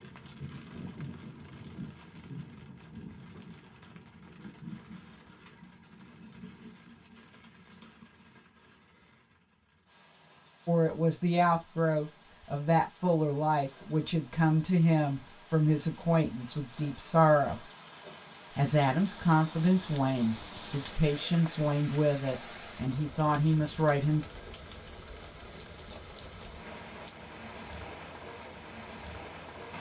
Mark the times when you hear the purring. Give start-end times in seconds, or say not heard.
not heard.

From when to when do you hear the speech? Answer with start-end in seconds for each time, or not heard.
10.7-17.6, 18.6-24.3.